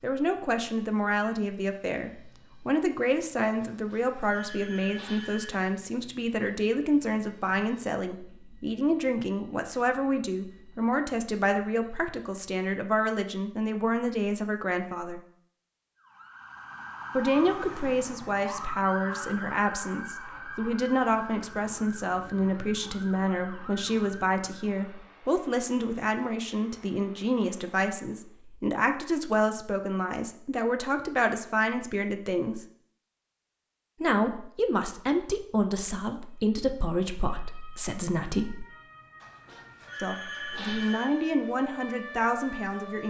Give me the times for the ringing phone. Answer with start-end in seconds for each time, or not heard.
3.7-5.5, 39.2-41.0.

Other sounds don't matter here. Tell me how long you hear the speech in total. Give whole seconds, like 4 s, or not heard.
38 s.